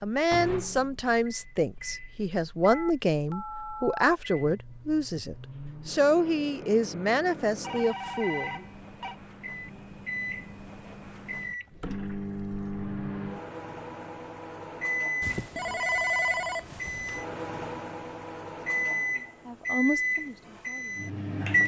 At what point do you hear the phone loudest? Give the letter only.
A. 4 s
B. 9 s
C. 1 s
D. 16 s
D.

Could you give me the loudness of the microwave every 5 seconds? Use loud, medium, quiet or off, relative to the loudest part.
quiet, quiet, medium, loud, loud.